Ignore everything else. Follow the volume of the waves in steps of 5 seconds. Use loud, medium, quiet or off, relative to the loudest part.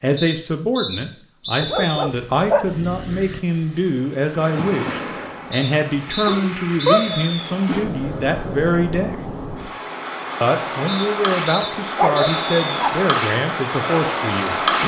medium, medium, loud.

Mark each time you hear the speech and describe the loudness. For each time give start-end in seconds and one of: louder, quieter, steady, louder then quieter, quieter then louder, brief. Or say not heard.
0.0-9.2 steady
10.4-14.6 steady.